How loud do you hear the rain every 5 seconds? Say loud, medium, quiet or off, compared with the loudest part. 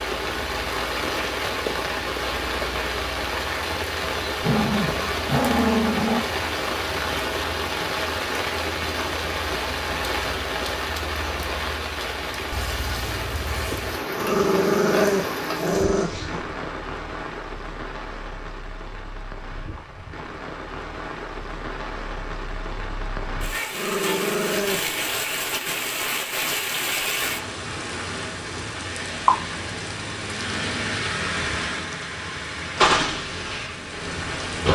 loud, loud, loud, medium, medium, loud, loud.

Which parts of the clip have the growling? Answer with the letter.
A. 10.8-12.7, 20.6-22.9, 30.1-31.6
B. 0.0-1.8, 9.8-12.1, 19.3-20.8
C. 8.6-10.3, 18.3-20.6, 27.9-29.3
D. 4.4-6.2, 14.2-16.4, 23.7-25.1
D.